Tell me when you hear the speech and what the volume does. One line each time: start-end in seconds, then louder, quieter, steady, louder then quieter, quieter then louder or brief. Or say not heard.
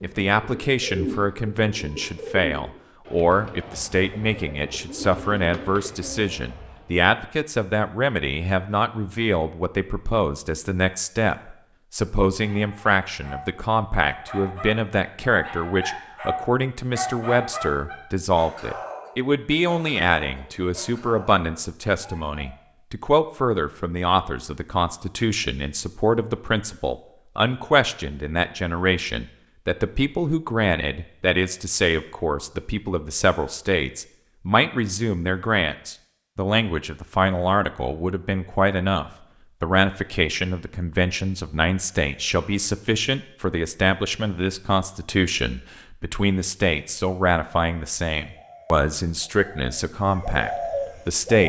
0.0-51.4 steady.